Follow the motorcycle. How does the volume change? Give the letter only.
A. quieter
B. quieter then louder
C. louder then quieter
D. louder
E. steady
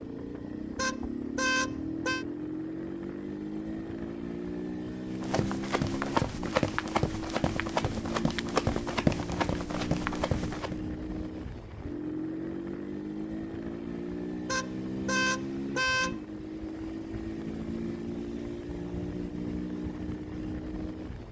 E.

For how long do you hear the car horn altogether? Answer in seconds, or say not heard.
3 s.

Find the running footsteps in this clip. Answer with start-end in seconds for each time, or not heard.
5.2-10.8.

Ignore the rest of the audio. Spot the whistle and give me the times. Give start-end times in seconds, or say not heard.
not heard.